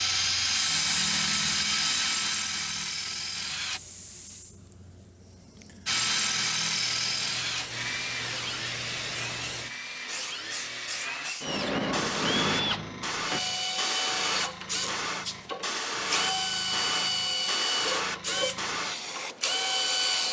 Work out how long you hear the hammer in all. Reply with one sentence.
You can't hear the hammer here.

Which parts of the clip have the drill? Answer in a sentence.
The drill can be heard from 0.0 to 3.8 s and from 5.8 to 20.2 s.